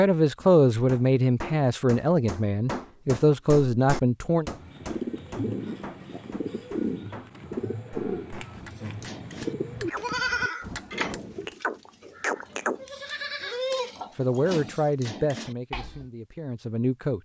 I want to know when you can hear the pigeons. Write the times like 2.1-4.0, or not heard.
4.4-9.9.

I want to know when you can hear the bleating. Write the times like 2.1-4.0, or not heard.
8.6-16.1.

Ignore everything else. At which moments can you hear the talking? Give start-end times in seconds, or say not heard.
0.0-4.5, 14.2-17.1.